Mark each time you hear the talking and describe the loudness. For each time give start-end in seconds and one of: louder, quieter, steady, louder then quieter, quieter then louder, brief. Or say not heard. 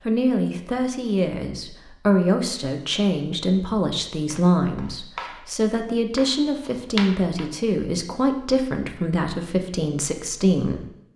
0.1-10.8 steady.